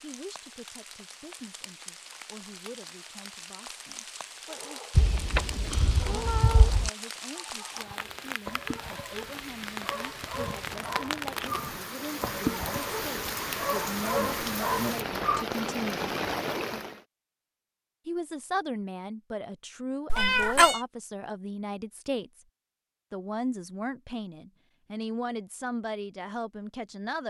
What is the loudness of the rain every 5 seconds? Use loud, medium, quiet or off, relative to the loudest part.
quiet, medium, loud, loud, off, off.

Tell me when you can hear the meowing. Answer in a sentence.
The meowing can be heard from 5.0 to 6.9 s and from 20.1 to 20.8 s.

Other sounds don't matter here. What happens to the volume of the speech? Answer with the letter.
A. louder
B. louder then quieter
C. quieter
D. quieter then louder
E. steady
A.